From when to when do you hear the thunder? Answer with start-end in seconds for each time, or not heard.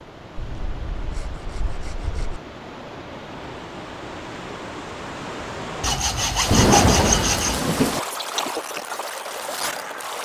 6.5-8.0.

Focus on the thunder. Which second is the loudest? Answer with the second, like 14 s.
7 s.